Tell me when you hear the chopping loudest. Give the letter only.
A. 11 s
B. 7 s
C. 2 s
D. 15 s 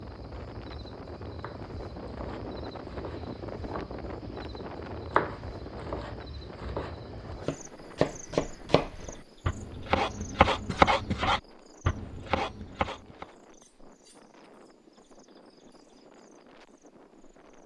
A.